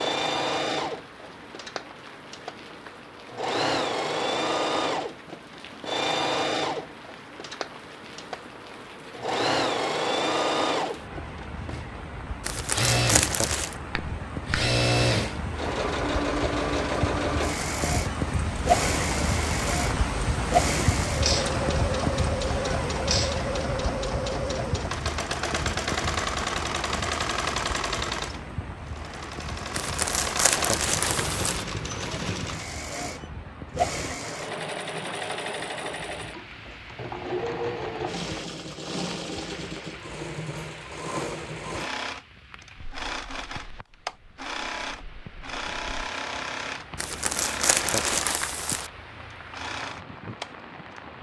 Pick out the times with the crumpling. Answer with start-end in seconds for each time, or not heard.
12.4-13.8, 29.7-31.6, 47.0-48.9.